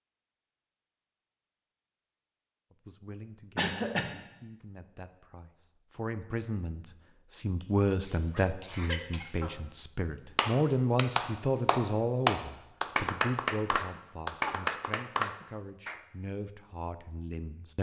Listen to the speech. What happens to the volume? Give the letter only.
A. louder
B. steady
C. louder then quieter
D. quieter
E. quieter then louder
C.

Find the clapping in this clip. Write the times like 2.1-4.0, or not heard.
10.3-16.0.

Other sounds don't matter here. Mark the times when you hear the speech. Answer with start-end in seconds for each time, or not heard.
2.7-17.7.